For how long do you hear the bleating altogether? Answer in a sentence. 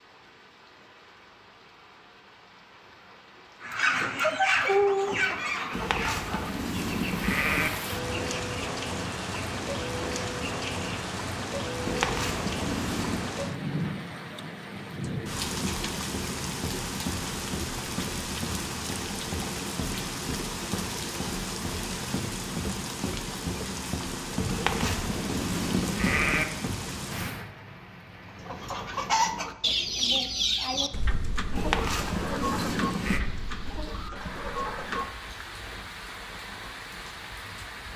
You can hear the bleating for 7 seconds altogether.